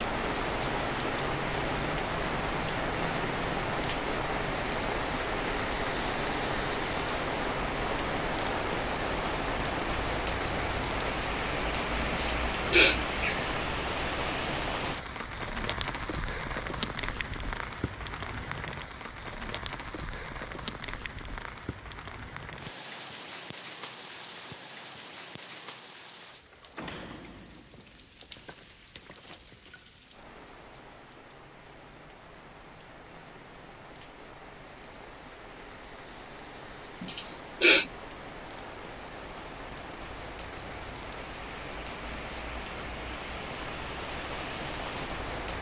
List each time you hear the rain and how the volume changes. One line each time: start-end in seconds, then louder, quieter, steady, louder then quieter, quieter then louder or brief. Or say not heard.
0.0-45.5 quieter then louder.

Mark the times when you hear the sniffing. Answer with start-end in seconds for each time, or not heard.
12.2-13.3, 37.0-37.9.